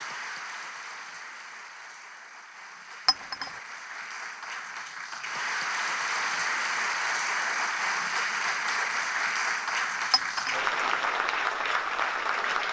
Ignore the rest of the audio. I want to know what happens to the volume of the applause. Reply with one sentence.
The loudness of the applause goes up.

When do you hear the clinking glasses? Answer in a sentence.
The clinking glasses can be heard from 3.0 to 3.5 s and from 10.1 to 10.6 s.